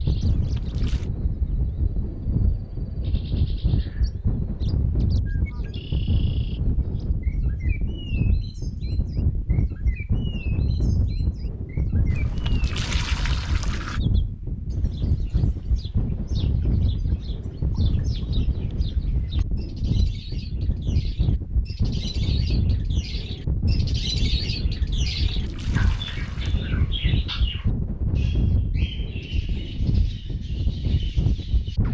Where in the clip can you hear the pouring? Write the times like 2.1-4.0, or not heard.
0.2-1.1, 12.1-14.0, 24.9-26.6.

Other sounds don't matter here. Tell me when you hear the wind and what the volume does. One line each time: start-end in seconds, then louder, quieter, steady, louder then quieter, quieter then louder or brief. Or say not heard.
0.0-31.8 steady.